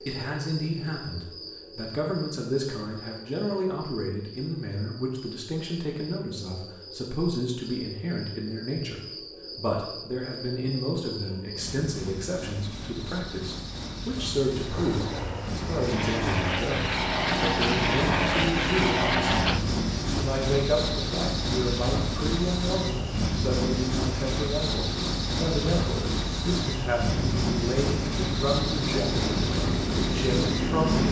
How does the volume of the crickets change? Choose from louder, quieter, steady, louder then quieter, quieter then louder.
louder.